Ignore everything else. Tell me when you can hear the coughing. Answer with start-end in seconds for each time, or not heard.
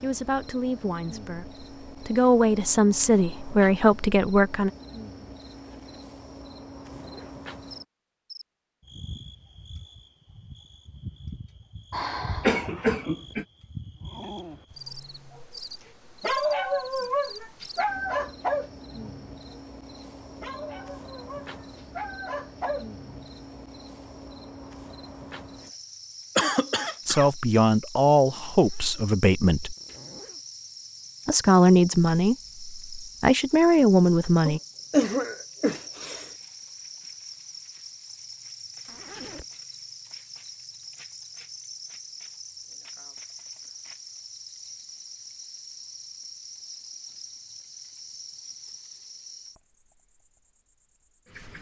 11.9-13.4, 26.4-27.2, 34.5-36.3.